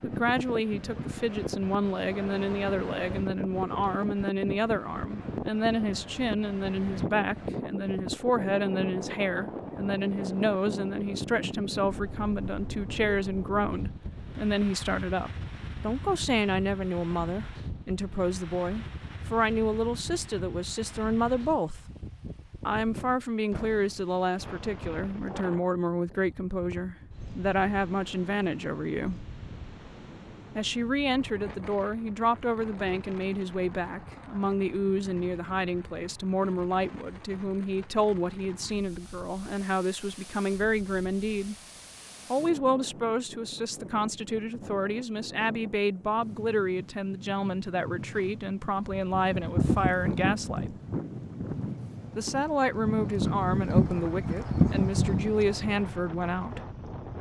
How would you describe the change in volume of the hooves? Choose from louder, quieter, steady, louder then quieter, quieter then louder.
quieter then louder.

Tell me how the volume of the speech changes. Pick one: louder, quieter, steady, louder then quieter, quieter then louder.
steady.